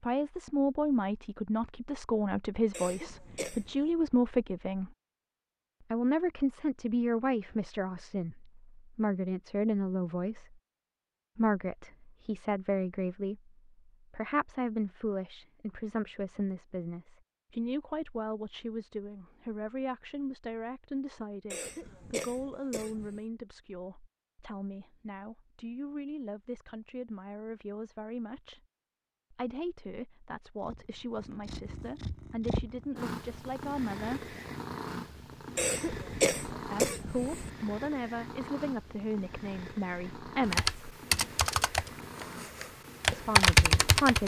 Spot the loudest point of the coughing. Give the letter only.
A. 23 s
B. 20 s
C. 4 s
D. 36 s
D.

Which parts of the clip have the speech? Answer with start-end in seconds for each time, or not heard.
0.0-4.9, 5.9-10.6, 11.3-28.6, 29.3-34.4, 36.6-40.8, 43.1-44.2.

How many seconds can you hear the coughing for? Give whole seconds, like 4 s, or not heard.
5 s.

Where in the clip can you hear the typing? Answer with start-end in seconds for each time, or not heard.
40.5-44.2.